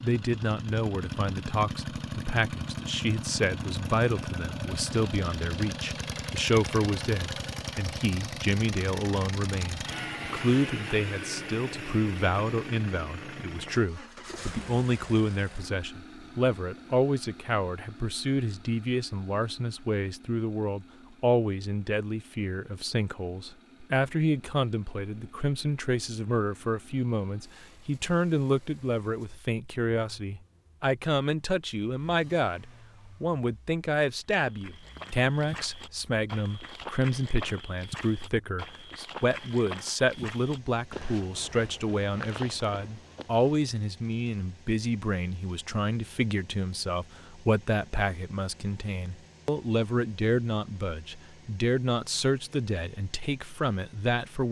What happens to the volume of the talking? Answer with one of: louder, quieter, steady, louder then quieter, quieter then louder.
steady.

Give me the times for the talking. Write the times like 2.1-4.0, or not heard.
0.0-54.4.